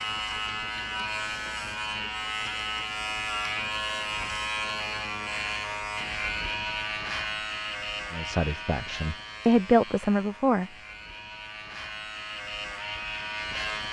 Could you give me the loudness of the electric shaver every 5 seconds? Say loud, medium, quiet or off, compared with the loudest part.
loud, loud, medium.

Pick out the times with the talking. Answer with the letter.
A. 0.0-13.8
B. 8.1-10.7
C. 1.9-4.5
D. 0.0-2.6
B.